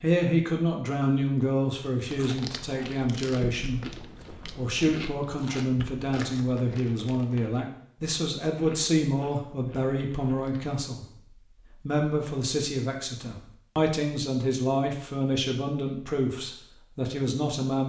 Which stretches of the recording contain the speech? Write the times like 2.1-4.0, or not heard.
0.0-3.8, 4.5-11.1, 11.7-17.8.